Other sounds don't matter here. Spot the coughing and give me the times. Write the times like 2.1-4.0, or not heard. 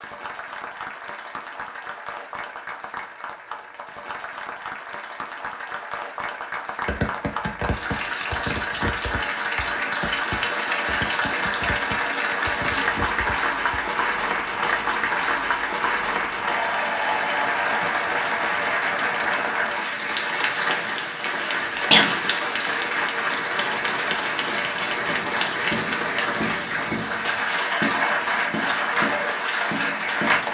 20.9-22.3.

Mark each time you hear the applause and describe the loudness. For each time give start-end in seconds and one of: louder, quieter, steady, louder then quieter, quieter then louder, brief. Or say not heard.
0.0-30.4 louder.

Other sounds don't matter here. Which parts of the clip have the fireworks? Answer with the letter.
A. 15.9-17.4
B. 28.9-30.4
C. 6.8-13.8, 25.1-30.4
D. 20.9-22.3
C.